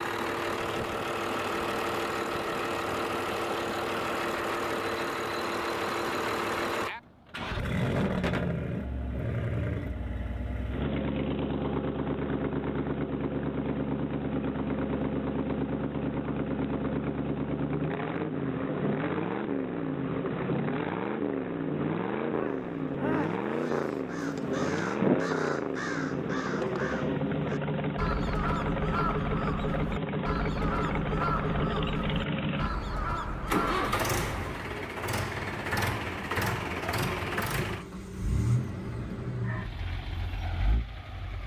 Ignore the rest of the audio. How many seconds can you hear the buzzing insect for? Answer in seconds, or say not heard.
not heard.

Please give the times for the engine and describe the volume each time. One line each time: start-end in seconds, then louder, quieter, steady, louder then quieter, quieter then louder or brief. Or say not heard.
0.0-41.4 steady.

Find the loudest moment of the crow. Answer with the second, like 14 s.
25 s.